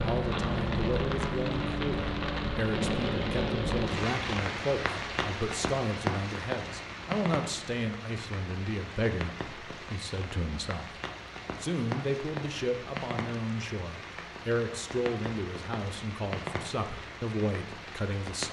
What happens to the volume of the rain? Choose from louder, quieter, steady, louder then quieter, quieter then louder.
quieter.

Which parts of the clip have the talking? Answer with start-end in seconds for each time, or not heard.
0.0-10.9, 11.6-18.4.